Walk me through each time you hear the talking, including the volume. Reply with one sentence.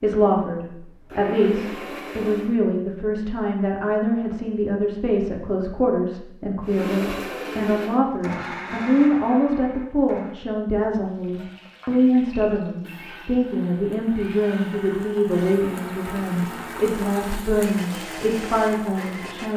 You can hear the talking from 0.0 to 19.5 s, at a steady volume.